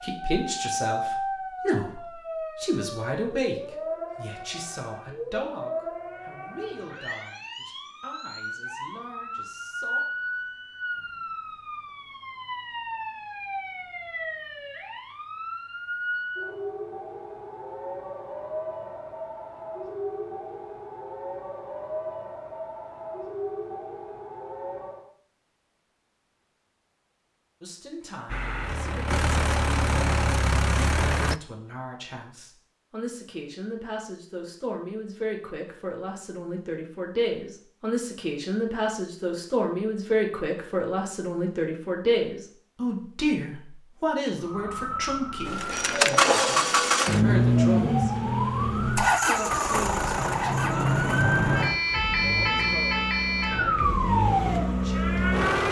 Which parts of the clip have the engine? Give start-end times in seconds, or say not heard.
28.2-31.4, 45.5-55.6.